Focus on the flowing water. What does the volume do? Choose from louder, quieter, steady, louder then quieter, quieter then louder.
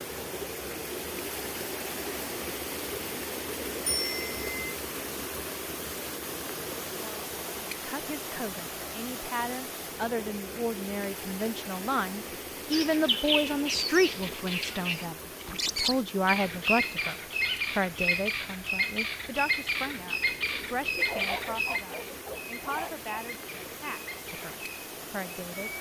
quieter.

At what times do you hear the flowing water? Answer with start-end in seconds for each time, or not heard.
0.0-25.7.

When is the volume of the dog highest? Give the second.
21 s.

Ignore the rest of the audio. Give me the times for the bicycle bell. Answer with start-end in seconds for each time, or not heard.
3.9-4.8.